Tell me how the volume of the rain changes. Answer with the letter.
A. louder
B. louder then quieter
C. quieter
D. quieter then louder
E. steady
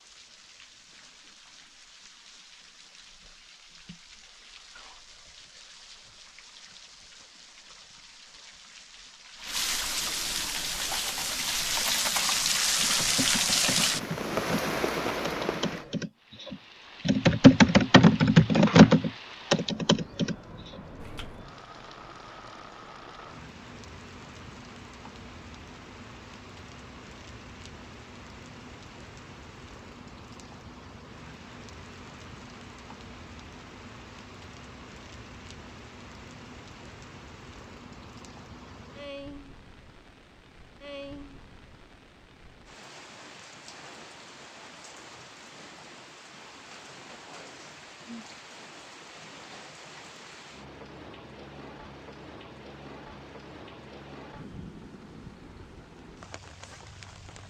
B.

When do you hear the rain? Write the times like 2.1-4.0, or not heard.
0.0-57.4.